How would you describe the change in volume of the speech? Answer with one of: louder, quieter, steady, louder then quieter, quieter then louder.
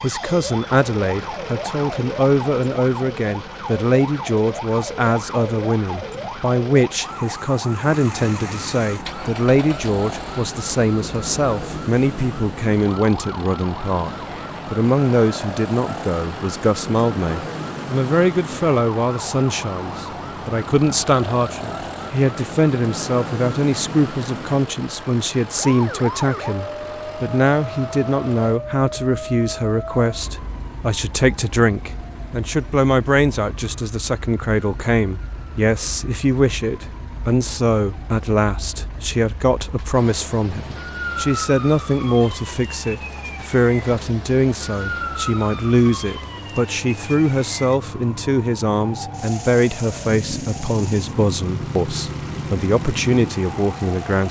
steady.